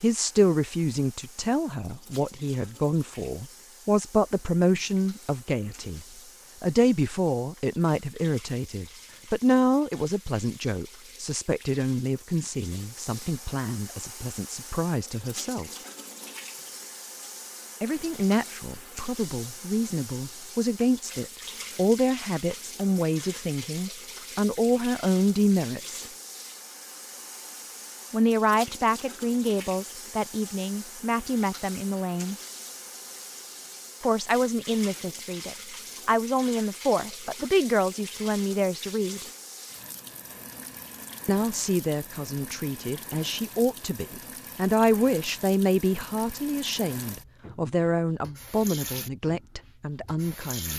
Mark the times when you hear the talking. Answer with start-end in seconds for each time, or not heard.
0.0-15.7, 17.8-26.1, 28.1-32.4, 34.0-39.2, 41.2-50.7.